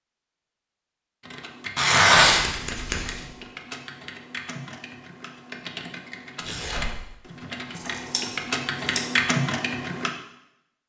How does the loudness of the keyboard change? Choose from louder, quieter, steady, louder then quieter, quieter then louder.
louder.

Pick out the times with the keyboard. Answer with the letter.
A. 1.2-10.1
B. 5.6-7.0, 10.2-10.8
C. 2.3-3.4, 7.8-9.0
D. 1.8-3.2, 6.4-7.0
A.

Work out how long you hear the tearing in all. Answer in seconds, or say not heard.
2 s.